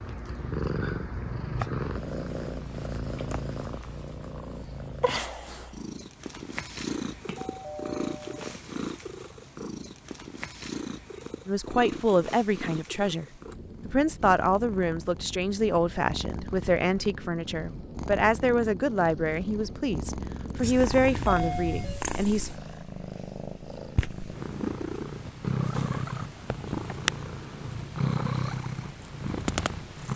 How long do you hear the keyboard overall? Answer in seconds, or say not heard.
not heard.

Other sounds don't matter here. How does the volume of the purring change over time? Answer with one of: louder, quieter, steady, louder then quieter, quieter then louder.
quieter then louder.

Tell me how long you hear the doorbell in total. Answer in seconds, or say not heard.
3 s.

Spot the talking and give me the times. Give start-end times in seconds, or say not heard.
11.4-13.2, 13.8-22.5.